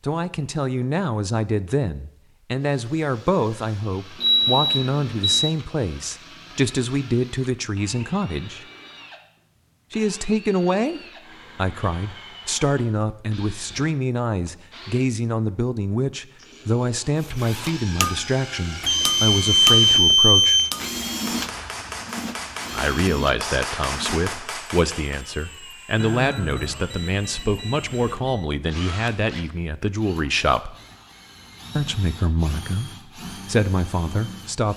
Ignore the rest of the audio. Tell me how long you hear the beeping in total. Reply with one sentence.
The beeping can be heard for 6 seconds in total.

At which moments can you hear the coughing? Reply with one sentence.
You can't hear the coughing here.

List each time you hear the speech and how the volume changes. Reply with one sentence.
The speech can be heard from 0.0 to 8.7 s, at a steady volume; from 9.9 to 20.6 s, at a steady volume; from 22.7 to 30.8 s, at a steady volume; and briefly from 31.8 to 34.7 s.